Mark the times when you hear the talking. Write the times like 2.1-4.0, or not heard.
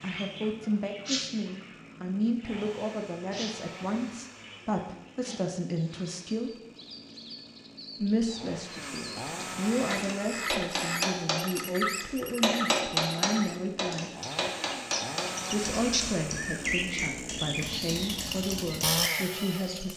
0.0-6.5, 8.0-14.1, 15.5-19.9.